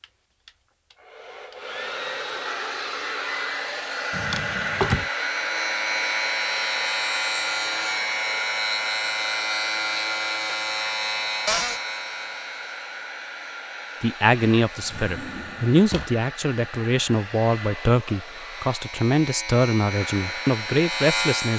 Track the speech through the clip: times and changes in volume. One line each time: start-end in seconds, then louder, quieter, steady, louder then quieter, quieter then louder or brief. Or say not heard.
14.0-21.5 steady.